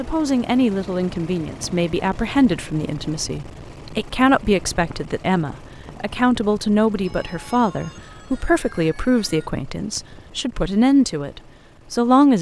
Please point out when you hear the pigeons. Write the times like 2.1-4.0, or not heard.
not heard.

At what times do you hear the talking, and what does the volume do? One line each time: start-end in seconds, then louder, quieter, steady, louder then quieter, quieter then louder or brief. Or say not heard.
0.0-12.3 steady.